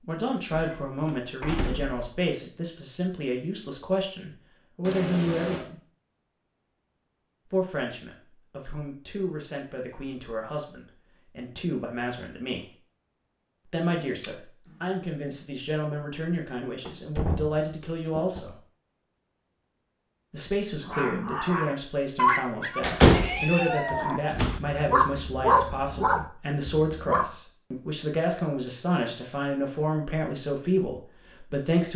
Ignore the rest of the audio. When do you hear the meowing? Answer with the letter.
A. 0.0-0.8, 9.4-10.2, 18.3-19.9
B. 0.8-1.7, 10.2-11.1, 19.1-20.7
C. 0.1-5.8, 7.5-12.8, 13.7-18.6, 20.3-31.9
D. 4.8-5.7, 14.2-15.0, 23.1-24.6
D.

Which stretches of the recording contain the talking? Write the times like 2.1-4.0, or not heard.
0.1-5.8, 7.5-12.8, 13.7-18.6, 20.3-31.9.